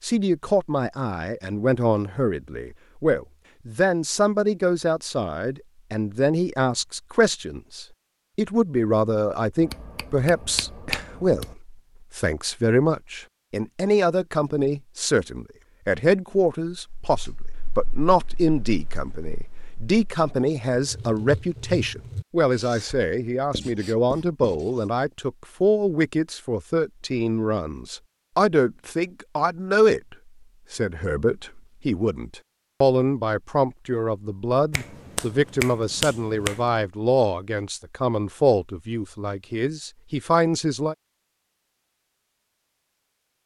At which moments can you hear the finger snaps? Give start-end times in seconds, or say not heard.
9.6-11.6, 34.7-36.8.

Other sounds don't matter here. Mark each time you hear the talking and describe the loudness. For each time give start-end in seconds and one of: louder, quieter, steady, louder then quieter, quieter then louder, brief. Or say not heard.
0.0-41.0 steady.